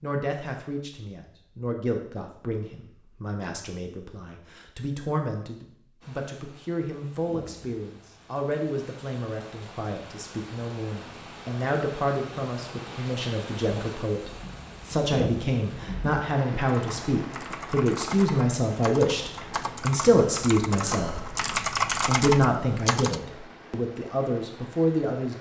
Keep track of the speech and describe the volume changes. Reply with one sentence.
The loudness of the speech goes up.